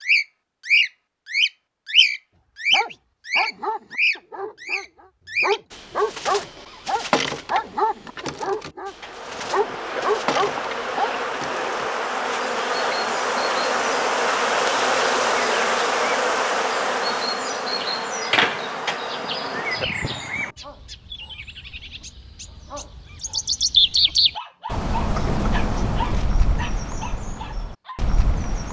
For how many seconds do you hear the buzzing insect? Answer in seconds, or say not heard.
12 s.